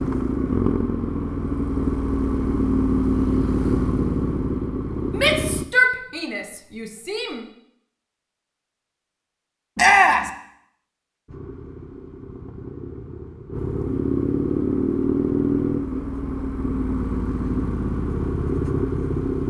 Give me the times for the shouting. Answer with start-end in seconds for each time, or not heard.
5.2-7.5, 9.8-10.3.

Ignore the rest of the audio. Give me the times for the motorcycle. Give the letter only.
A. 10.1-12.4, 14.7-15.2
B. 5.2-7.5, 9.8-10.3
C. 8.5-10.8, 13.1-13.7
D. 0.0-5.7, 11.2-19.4
D.